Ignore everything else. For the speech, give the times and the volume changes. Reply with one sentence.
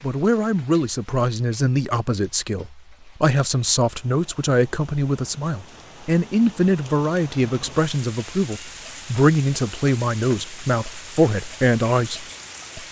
You can hear the speech from 0.0 to 12.8 s, at a steady volume.